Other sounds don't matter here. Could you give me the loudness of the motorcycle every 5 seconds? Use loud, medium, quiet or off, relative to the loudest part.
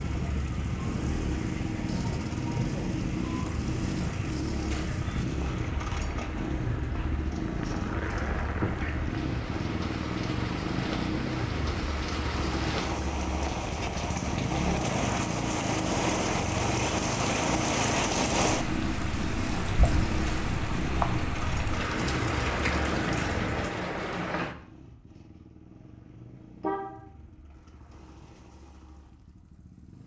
loud, loud, loud, loud, loud, quiet.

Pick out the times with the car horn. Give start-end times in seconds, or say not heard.
26.1-27.0.